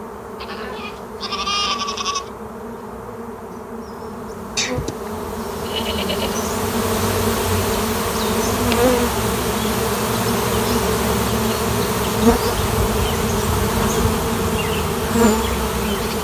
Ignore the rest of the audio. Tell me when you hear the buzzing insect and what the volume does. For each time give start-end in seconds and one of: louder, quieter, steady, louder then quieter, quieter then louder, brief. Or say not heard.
0.0-16.1 louder.